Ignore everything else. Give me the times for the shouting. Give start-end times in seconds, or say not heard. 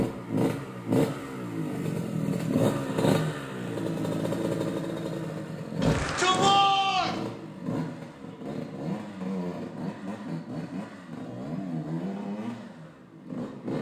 5.8-7.2.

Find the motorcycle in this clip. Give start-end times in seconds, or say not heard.
0.0-13.7.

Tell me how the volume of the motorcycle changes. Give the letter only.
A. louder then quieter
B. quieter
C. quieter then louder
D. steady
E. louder
B.